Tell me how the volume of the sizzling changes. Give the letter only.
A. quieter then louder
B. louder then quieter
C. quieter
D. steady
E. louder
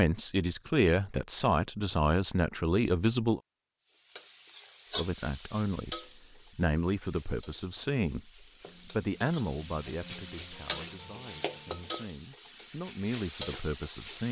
A.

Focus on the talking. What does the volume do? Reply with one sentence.
The loudness of the talking goes down.